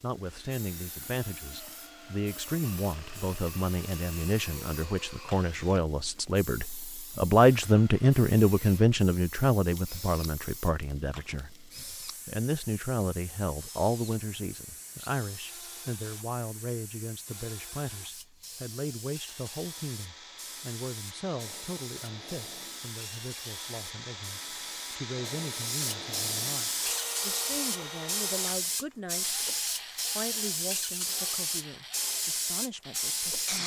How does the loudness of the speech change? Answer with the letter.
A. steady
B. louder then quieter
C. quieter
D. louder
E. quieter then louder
B.